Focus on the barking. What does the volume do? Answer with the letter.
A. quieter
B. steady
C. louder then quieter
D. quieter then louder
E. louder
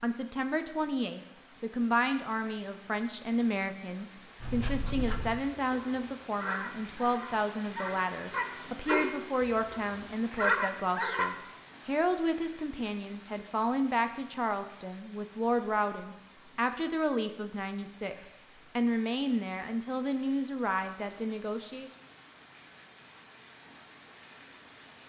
E.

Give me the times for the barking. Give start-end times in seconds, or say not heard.
4.4-11.3.